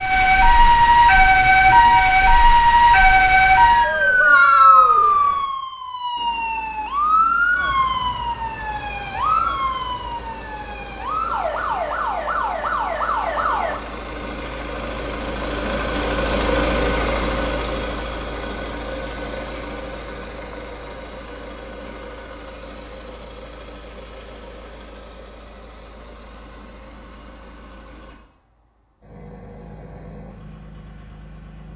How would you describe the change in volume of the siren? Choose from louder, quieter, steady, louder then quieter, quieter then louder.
quieter.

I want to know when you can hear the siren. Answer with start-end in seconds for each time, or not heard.
0.0-13.8.